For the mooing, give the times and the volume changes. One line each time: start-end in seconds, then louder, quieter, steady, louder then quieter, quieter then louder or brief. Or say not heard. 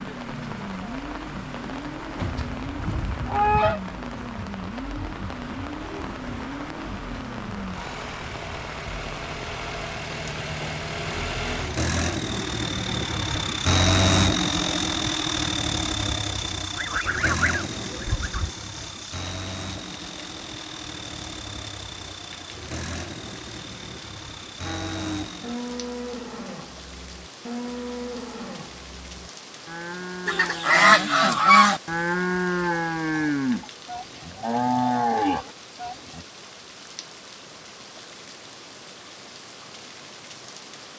24.6-36.2 louder.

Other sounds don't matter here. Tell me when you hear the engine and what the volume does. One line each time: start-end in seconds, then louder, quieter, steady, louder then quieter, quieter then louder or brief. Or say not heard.
0.0-25.8 louder then quieter.